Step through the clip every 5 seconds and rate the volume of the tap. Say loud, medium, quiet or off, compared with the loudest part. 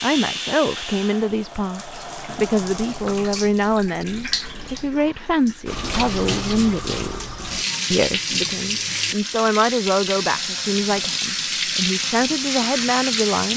medium, loud, loud.